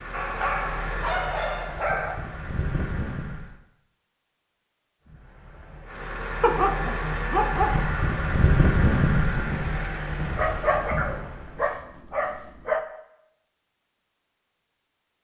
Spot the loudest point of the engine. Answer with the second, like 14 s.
9 s.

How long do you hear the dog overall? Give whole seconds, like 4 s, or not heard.
6 s.